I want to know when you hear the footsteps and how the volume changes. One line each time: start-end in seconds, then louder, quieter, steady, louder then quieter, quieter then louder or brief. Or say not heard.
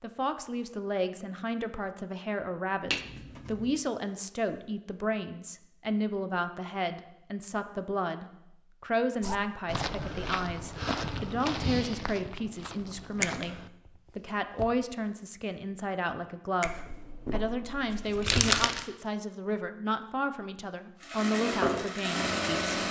9.2-14.8 quieter.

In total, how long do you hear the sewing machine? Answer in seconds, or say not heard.
2 s.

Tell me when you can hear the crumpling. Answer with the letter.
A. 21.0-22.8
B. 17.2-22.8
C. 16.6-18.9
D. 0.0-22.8
C.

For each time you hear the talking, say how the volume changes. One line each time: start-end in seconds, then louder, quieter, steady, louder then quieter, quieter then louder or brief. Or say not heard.
0.0-22.8 steady.